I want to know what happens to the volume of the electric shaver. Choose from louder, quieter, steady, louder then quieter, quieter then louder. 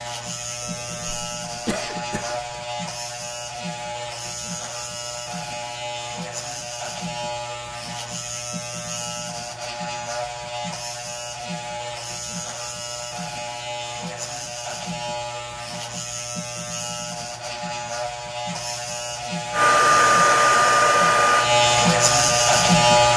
louder.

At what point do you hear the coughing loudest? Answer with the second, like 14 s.
2 s.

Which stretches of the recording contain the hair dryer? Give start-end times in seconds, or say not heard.
19.5-23.1.